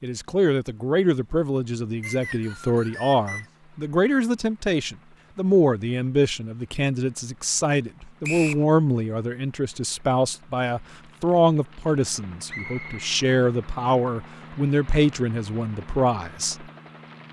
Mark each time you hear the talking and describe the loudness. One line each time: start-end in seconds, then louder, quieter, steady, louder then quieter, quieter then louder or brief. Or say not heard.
0.0-16.6 steady.